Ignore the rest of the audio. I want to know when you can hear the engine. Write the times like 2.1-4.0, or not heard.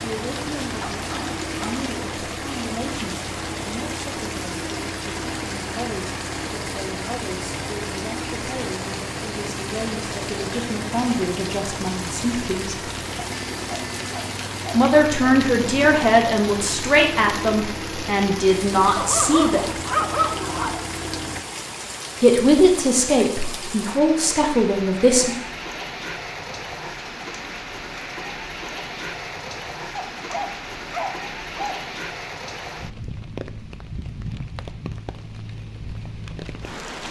0.0-21.4.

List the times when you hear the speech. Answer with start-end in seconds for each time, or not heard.
0.0-12.8, 14.7-19.8, 22.2-25.3.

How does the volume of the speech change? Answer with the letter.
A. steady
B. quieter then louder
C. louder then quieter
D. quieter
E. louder
E.